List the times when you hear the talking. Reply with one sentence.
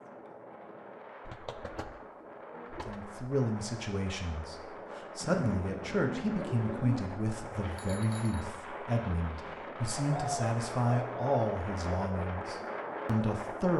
You can hear the talking from 2.9 to 13.7 s.